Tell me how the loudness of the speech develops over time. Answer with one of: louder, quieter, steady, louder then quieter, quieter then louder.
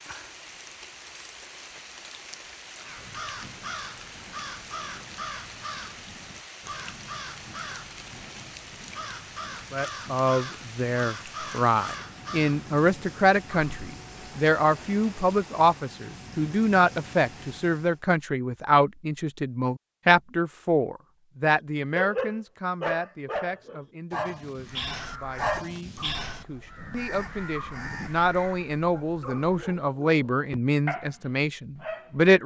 quieter then louder.